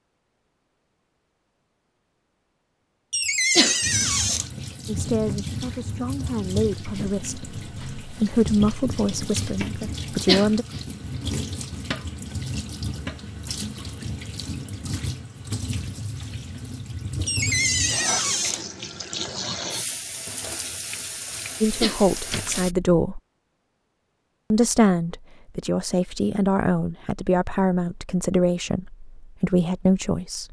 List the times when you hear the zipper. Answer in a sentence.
You can't hear the zipper here.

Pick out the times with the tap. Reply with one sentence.
The tap can be heard from 3.8 to 22.8 s.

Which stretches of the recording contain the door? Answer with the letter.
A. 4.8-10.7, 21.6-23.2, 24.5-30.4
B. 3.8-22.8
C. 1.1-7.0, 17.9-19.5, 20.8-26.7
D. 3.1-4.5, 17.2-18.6
D.